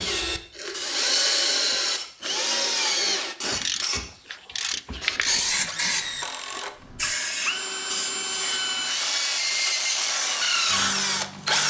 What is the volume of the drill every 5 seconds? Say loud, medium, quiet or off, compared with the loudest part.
loud, medium, loud.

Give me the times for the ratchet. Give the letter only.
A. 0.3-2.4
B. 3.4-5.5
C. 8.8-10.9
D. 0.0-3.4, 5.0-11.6
B.